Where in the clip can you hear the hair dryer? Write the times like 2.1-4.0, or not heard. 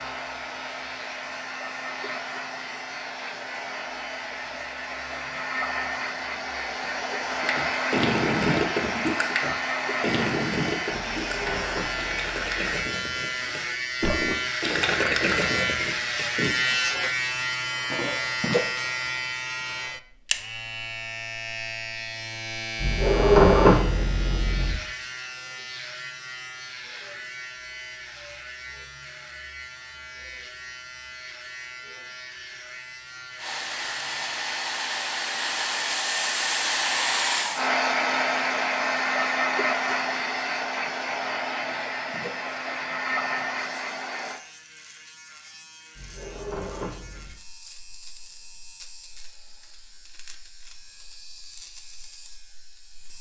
0.0-12.8, 33.4-44.4.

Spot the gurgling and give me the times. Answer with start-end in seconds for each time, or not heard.
7.4-16.5.